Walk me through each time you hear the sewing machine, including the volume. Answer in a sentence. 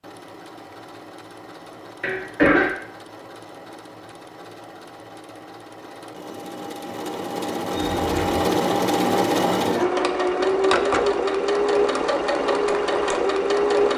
You can hear the sewing machine from 0.0 to 13.9 s, getting louder.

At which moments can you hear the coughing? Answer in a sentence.
You can hear the coughing from 2.0 to 2.7 s and from 7.7 to 8.4 s.